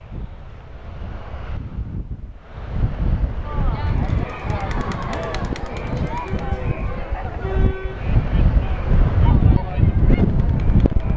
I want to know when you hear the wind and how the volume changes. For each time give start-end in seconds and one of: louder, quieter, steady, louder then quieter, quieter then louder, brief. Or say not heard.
0.0-11.1 louder.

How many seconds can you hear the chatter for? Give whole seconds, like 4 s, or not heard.
8 s.